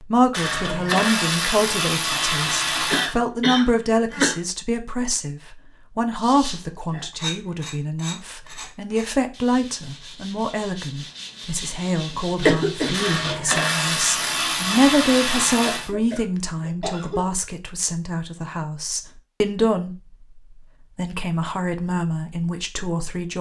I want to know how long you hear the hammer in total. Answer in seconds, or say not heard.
not heard.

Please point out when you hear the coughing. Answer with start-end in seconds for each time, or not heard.
2.9-4.3, 12.4-13.1, 15.6-17.3.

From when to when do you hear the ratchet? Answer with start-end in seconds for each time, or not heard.
0.3-3.1, 12.9-15.9.